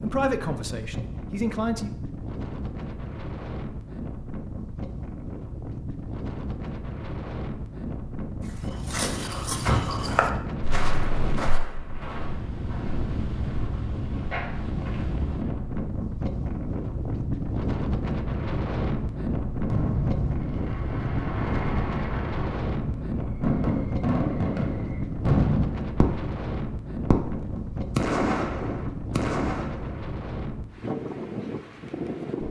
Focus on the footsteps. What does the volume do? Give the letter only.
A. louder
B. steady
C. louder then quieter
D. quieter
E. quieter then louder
E.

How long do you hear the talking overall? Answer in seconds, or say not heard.
2 s.